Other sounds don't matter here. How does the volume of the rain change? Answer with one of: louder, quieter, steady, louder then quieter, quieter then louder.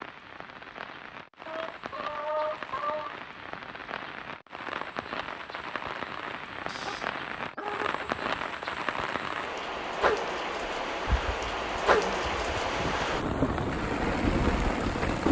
louder.